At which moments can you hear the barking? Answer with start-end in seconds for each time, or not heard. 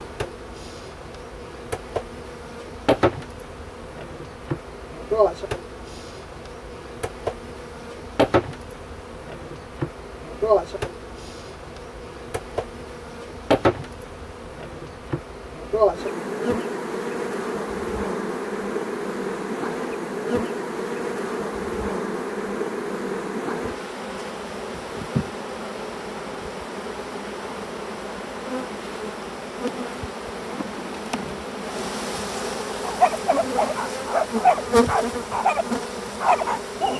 32.8-36.9.